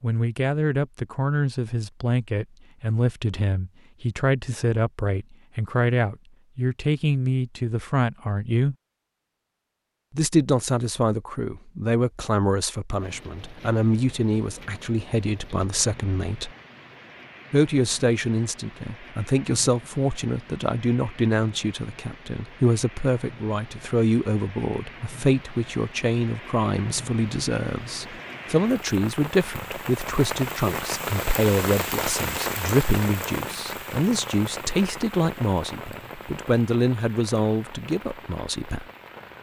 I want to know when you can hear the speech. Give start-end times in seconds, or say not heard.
0.0-8.8, 10.1-16.5, 17.5-38.9.